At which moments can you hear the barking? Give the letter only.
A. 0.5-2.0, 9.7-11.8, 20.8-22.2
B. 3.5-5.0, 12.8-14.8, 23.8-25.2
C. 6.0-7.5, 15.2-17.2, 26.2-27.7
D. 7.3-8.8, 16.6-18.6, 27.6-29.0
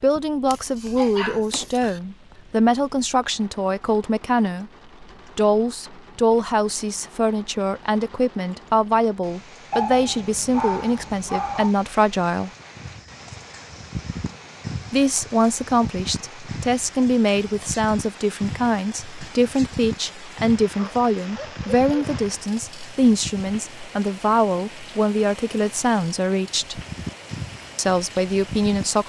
A.